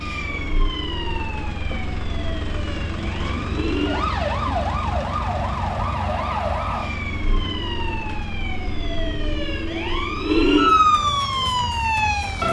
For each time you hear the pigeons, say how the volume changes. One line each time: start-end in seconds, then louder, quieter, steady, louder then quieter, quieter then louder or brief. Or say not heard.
not heard.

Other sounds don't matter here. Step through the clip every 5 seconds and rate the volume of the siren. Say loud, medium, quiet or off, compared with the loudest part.
medium, medium, loud.